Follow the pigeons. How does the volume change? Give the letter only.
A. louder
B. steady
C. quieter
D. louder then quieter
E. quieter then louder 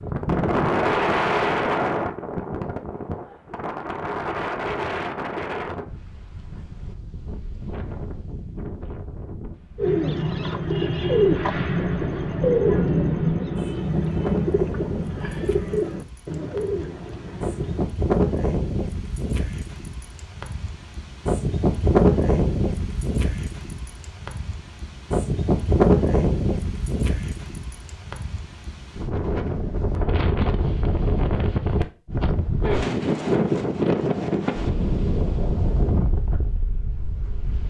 C.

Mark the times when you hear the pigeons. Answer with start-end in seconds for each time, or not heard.
9.8-17.9.